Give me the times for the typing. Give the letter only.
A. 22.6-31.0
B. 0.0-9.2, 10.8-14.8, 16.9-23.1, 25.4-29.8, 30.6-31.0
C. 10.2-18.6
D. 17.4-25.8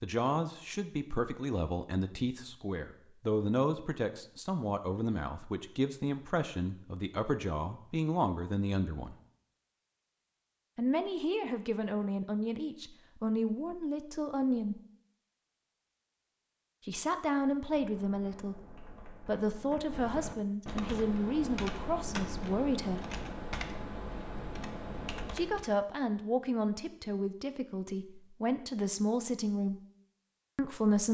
D.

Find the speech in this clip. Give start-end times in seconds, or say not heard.
0.0-9.2, 10.8-14.8, 16.9-23.1, 25.4-29.8, 30.6-31.0.